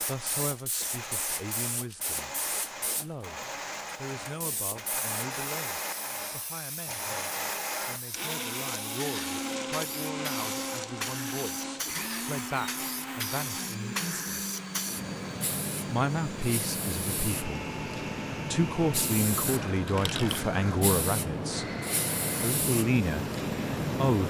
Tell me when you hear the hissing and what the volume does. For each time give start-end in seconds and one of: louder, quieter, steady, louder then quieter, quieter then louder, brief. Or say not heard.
0.0-24.2 louder.